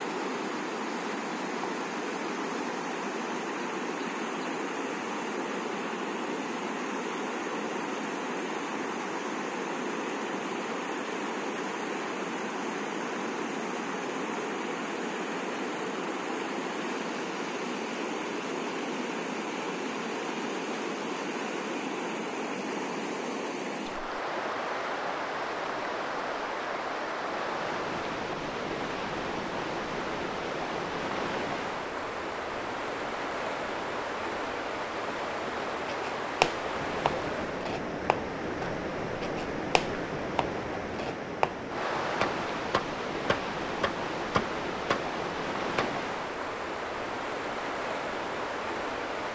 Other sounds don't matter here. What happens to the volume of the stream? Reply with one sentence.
The loudness of the stream stays about the same.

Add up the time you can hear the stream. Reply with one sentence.
You can hear the stream for 49 seconds altogether.